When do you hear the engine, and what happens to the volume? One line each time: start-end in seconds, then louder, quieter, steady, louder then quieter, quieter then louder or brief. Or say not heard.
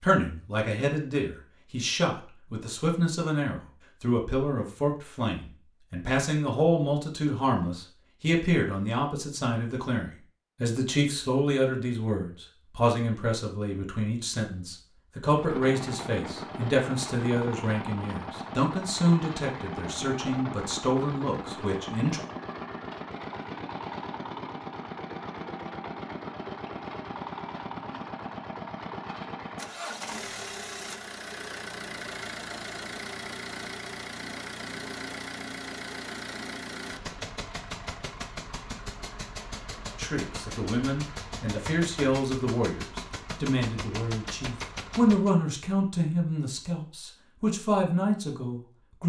15.3-45.3 steady.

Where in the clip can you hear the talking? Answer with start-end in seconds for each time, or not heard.
0.0-22.2, 40.0-49.0.